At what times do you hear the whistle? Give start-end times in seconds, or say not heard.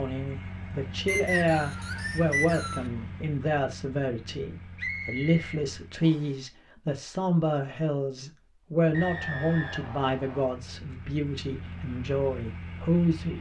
1.1-2.9, 4.8-6.3, 8.9-10.6.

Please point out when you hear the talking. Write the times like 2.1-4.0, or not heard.
0.0-13.3.